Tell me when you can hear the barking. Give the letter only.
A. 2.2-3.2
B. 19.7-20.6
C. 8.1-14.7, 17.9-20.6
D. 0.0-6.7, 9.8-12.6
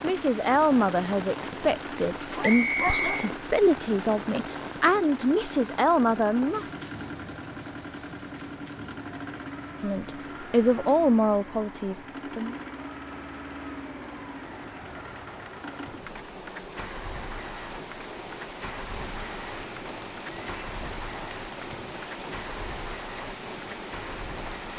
A.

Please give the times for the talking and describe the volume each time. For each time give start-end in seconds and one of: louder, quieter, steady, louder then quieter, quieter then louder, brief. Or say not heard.
0.0-6.7 steady
9.8-12.6 brief.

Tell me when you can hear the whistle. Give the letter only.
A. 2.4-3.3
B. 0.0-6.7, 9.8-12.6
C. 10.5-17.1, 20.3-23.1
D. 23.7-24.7
A.